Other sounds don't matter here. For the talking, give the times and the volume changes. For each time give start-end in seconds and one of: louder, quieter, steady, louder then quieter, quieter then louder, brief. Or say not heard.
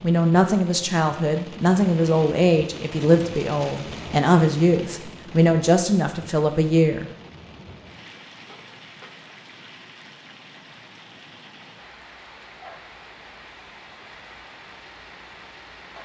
0.0-7.0 steady.